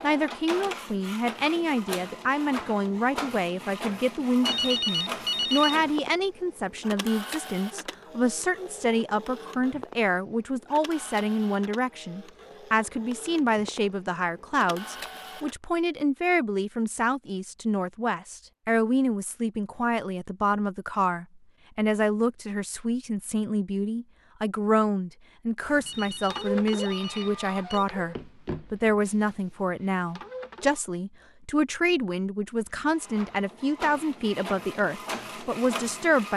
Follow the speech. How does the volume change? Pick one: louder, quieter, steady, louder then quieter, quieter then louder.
steady.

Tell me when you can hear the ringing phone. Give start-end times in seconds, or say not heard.
4.5-5.8, 25.9-27.9.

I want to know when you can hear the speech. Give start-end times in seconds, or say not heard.
0.0-36.3.